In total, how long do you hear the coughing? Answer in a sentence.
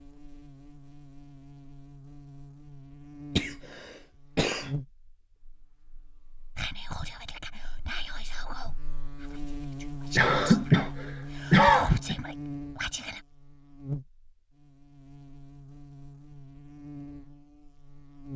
You can hear the coughing for 3 seconds altogether.